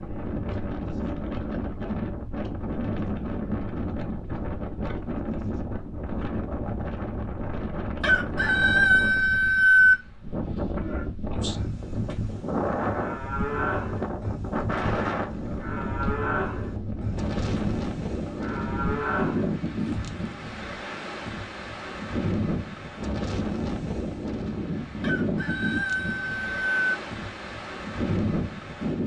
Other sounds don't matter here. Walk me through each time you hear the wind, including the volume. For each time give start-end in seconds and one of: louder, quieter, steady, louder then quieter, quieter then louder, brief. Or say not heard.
0.0-29.0 steady.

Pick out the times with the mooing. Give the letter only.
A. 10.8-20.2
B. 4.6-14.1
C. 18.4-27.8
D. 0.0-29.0
A.